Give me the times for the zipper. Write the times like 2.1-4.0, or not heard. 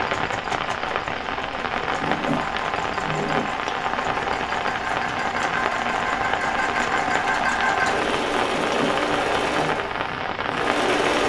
2.0-3.5, 8.5-9.8.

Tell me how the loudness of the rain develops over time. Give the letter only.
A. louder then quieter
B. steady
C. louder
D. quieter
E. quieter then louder
B.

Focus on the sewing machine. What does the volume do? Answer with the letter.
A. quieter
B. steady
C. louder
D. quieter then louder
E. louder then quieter
C.